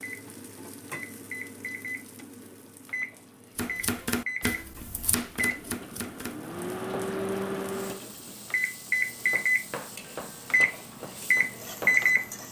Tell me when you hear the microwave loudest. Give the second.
12 s.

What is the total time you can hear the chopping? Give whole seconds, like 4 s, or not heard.
7 s.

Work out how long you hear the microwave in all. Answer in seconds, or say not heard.
12 s.